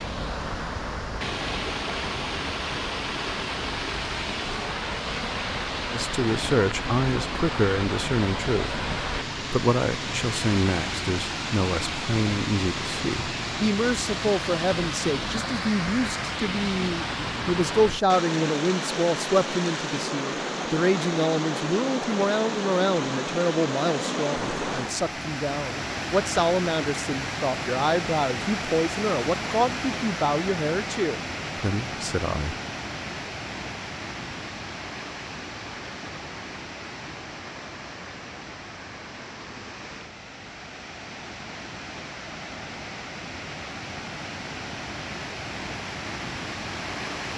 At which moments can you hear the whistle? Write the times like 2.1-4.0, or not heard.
not heard.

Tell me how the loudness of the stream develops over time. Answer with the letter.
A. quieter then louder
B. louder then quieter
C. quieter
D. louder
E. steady
C.